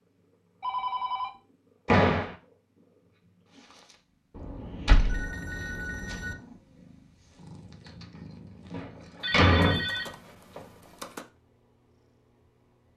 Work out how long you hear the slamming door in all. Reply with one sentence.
You can hear the slamming door for 2 seconds altogether.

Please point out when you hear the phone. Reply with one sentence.
You can hear the phone from 0.6 to 1.3 s, from 4.3 to 6.3 s and from 9.2 to 11.2 s.